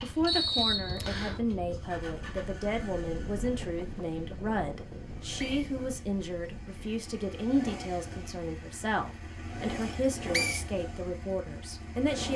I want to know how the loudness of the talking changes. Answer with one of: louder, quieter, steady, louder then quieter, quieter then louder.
steady.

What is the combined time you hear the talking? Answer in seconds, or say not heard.
12 s.